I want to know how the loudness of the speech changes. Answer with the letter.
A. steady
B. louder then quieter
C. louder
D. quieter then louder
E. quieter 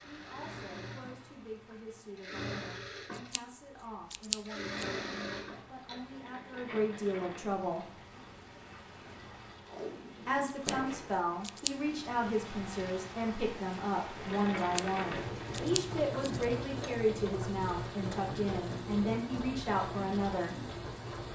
C.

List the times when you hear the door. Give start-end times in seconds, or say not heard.
not heard.